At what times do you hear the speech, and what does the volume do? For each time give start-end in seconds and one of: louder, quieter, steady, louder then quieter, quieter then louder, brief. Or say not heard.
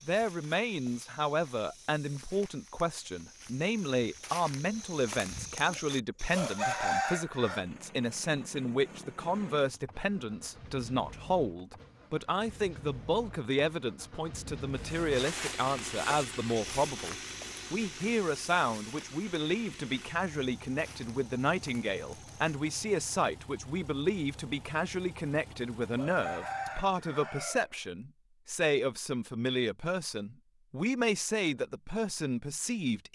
0.1-33.0 steady.